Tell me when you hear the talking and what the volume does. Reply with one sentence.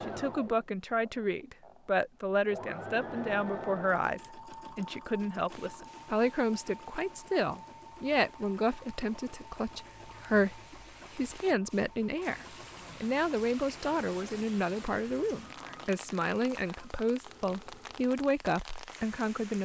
You can hear the talking from 0.0 to 19.6 s, at a steady volume.